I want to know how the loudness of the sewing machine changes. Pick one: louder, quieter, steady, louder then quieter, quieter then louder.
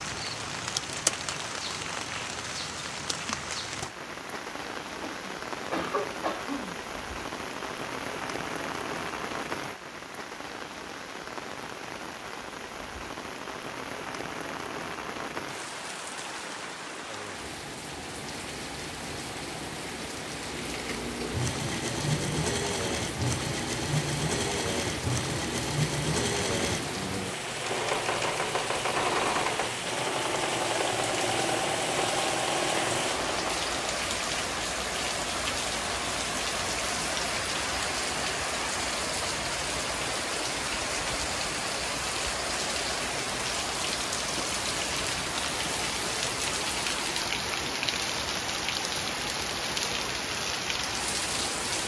steady.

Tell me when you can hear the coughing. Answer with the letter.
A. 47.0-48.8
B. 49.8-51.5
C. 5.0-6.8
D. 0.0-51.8
C.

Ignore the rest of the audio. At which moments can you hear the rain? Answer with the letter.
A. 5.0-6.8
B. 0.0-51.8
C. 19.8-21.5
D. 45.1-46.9
B.